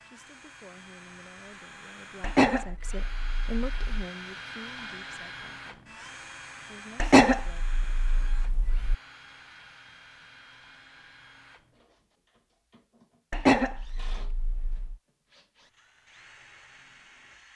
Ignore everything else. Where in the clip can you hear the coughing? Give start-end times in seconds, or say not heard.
2.2-3.9, 7.0-8.9, 13.3-14.9.